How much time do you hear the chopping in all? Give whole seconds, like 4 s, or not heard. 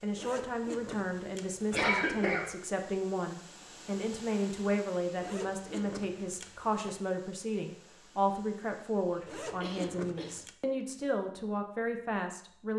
not heard.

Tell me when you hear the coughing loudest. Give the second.
2 s.